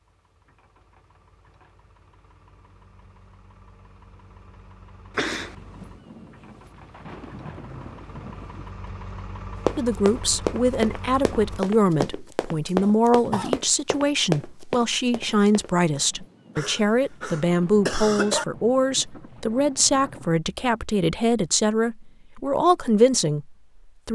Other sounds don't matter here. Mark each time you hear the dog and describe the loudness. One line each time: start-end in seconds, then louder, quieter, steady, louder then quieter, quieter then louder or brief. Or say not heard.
not heard.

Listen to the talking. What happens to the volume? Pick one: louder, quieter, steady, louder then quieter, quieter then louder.
steady.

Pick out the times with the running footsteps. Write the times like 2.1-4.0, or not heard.
9.7-15.7.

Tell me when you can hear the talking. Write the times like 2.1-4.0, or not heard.
9.8-24.1.